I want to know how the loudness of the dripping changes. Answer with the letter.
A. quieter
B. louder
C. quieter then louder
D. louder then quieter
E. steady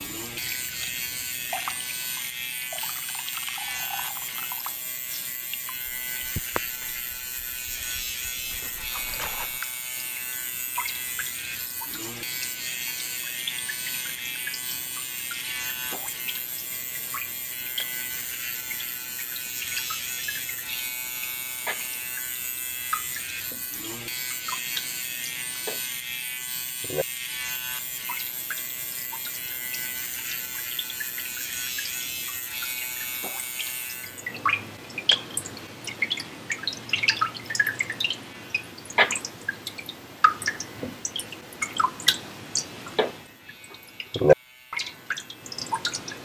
B.